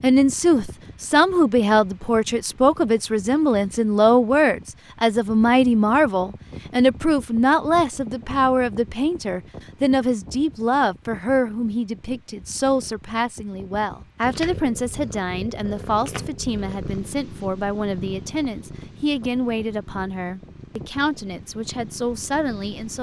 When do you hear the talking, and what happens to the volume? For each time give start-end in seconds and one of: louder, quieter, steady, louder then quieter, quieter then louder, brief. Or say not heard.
0.0-22.9 quieter.